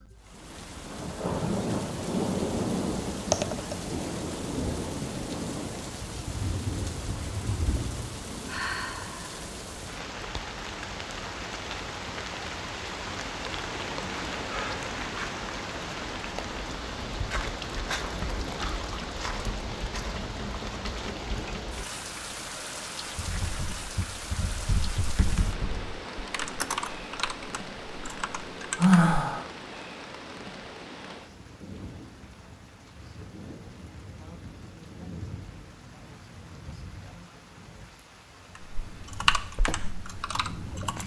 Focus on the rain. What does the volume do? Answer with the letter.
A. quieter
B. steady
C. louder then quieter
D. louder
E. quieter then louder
A.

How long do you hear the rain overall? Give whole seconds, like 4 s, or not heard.
41 s.